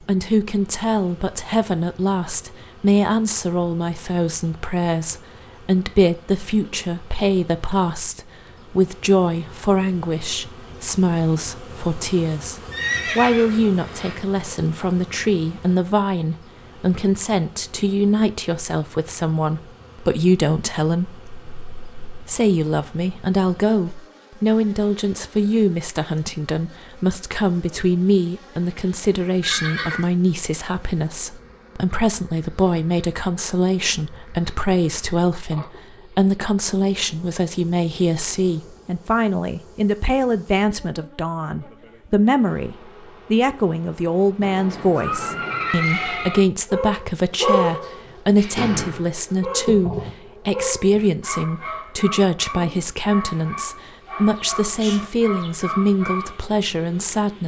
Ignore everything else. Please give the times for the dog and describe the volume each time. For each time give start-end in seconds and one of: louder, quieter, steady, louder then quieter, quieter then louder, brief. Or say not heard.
46.7-56.4 quieter.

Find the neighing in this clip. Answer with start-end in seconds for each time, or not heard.
12.7-14.6, 29.4-30.1, 44.4-46.5.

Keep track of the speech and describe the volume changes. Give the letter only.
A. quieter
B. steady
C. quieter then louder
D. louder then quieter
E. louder
B.